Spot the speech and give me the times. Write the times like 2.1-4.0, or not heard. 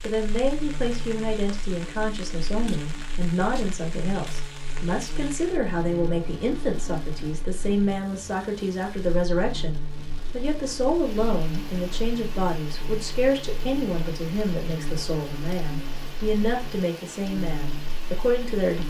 0.0-18.8.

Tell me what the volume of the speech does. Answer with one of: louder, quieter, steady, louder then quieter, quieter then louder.
steady.